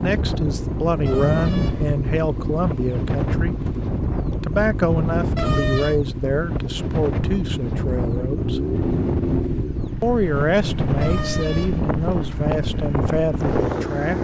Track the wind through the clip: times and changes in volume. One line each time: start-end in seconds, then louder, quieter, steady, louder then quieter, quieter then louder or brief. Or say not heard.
0.0-14.2 steady.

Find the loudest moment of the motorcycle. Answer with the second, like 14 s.
9 s.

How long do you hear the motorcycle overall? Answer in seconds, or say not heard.
14 s.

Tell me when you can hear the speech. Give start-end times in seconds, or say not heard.
0.0-3.8, 4.4-8.6, 10.0-14.2.